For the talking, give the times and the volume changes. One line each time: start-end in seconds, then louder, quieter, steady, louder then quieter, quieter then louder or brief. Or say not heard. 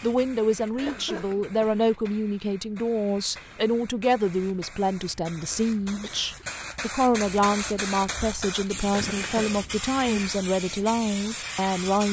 0.0-12.0 steady.